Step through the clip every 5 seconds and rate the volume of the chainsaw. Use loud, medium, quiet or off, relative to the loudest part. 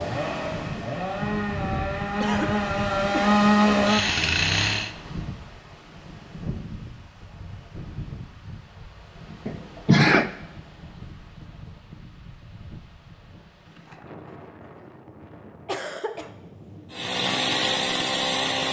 loud, off, off, loud.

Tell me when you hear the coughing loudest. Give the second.
10 s.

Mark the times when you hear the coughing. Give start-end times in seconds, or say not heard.
2.2-3.4, 9.4-10.3, 15.7-16.3.